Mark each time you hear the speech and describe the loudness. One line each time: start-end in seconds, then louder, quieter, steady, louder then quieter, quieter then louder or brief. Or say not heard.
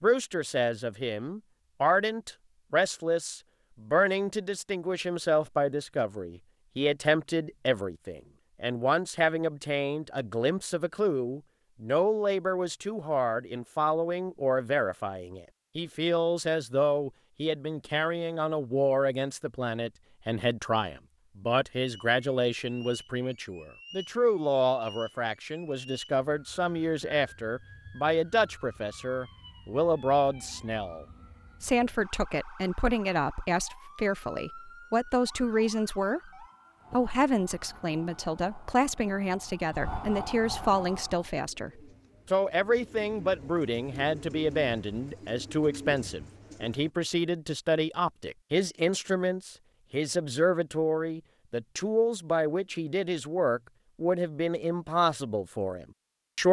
0.0-36.3 steady
36.9-56.4 steady.